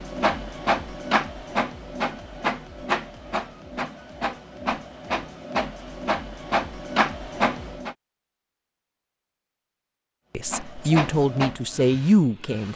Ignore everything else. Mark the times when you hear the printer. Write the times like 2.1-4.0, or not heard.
0.0-8.0, 10.3-12.7.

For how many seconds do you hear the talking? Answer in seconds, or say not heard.
2 s.